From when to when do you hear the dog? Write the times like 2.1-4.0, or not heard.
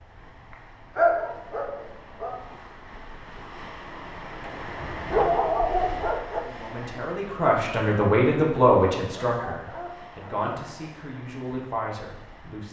0.9-2.4, 4.8-6.4, 9.2-10.8.